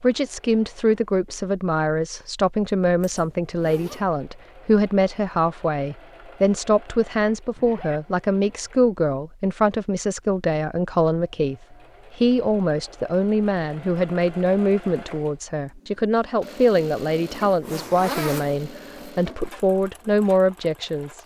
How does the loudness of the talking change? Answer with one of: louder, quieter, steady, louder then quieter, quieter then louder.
steady.